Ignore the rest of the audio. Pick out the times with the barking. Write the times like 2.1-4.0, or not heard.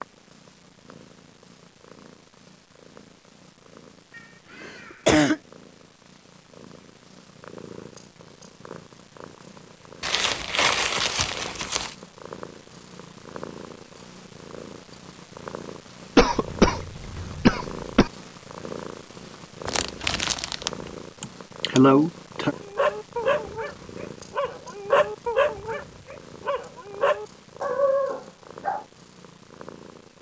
22.6-28.8.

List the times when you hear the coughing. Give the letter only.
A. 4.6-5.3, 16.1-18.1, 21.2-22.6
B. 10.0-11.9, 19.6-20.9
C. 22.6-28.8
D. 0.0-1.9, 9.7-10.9
A.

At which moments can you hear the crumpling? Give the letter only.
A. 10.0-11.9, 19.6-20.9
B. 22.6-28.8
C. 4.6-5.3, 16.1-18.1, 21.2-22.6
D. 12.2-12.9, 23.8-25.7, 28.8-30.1
A.